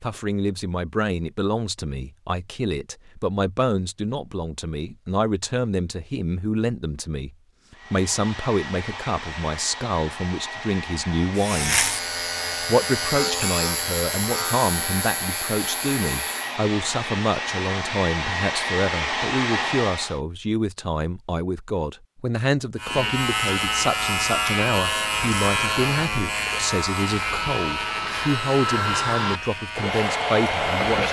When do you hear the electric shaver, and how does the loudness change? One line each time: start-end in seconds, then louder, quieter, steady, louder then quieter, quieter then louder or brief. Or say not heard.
11.3-16.6 quieter
22.8-31.0 quieter.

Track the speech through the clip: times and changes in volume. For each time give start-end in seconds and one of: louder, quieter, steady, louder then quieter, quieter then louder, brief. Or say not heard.
0.0-11.8 steady
12.5-31.0 steady.